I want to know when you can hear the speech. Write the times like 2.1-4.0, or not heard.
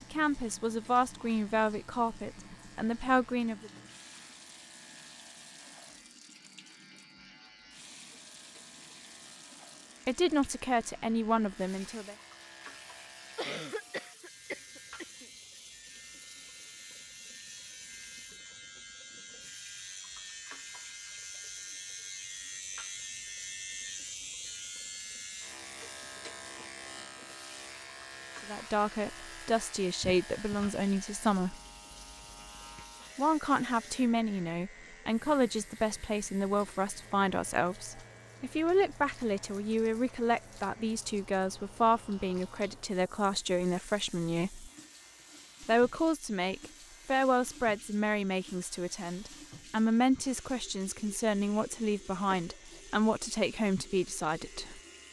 0.1-3.7, 10.1-12.2, 28.4-31.6, 33.1-44.7, 45.6-54.8.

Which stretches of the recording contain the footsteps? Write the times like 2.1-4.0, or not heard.
not heard.